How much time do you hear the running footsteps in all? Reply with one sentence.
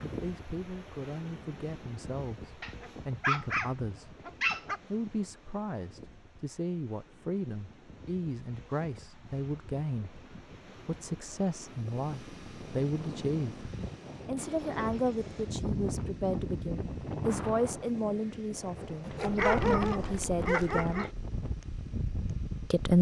You can't hear the running footsteps here.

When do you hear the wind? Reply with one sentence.
You can hear the wind from 0.0 to 22.9 s.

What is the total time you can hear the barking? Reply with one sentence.
You can hear the barking for 4 seconds altogether.